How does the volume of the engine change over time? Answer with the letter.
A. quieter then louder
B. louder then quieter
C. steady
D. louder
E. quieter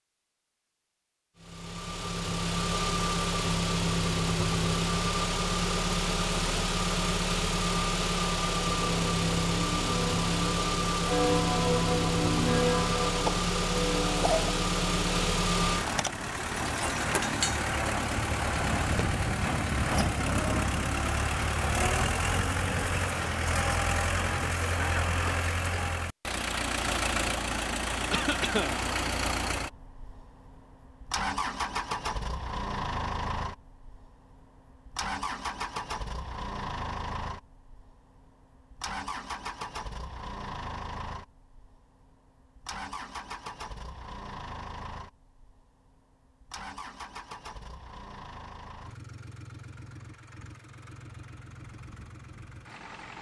E.